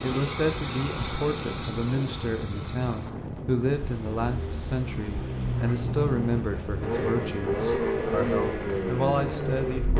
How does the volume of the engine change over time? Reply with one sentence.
The loudness of the engine goes down, then up.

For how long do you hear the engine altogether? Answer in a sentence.
You can hear the engine for 10 seconds altogether.